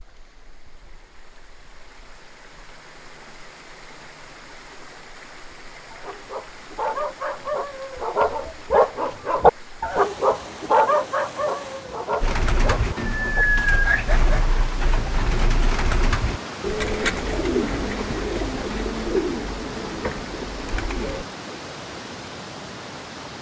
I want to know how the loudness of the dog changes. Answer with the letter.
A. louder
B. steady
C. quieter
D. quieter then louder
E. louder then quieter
E.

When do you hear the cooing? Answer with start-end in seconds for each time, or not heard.
12.2-21.2.